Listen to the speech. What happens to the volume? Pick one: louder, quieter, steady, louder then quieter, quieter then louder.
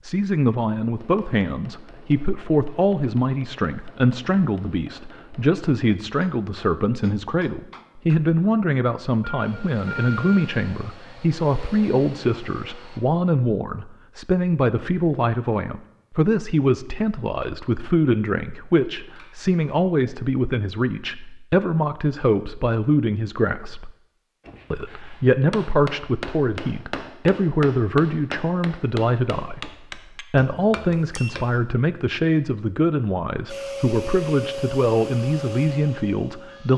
steady.